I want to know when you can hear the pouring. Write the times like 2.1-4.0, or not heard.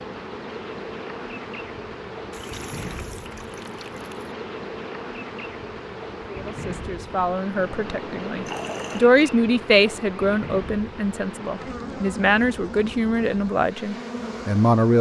2.3-4.3, 7.5-9.1.